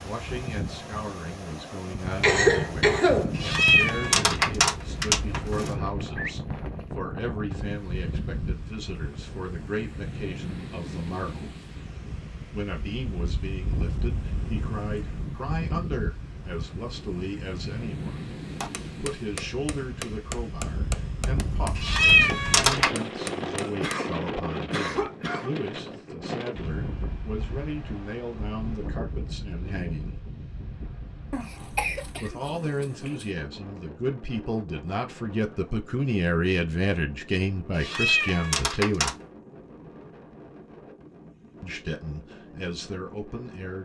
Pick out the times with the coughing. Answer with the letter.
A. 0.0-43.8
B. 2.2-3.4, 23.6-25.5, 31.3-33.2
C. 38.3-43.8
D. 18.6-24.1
B.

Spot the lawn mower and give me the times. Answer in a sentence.
You can't hear the lawn mower here.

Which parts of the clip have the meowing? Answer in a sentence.
The meowing can be heard from 3.4 to 5.7 s, from 21.8 to 22.9 s and from 37.8 to 39.1 s.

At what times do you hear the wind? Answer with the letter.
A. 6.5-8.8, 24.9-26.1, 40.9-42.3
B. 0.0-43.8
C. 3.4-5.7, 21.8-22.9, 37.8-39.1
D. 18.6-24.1
B.